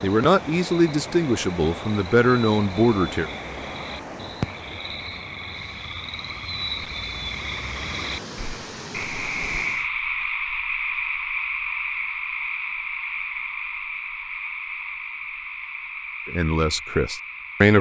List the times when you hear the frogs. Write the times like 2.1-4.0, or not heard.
0.0-17.7.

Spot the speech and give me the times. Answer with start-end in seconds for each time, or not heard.
0.0-3.3, 16.2-17.7.